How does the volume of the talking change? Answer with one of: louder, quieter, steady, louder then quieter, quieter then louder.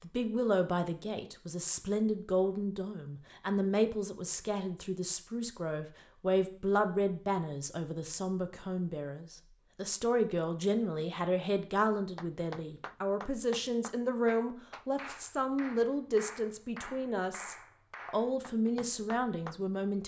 steady.